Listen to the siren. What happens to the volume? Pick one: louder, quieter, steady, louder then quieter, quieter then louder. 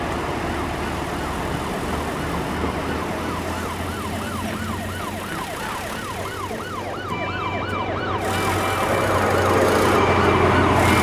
louder.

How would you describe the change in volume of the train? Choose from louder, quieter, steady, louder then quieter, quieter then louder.
quieter then louder.